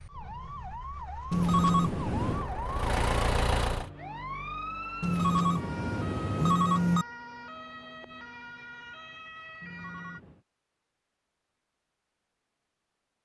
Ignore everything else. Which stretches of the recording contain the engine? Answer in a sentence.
You can hear the engine from 2.2 to 3.9 s.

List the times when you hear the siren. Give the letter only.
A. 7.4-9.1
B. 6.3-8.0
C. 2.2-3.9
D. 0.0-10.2
D.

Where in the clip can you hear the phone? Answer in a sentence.
You can hear the phone from 1.3 to 2.5 s, from 5.0 to 7.0 s and from 9.6 to 10.4 s.